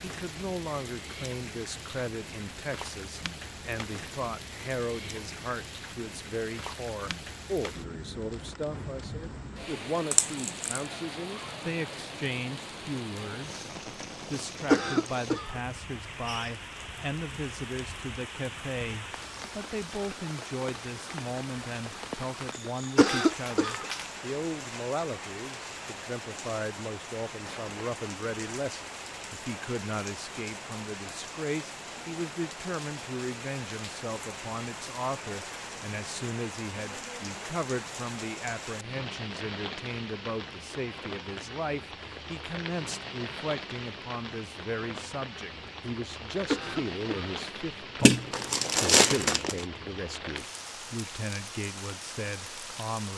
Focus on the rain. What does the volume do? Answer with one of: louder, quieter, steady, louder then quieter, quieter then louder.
steady.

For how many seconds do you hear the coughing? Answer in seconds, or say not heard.
3 s.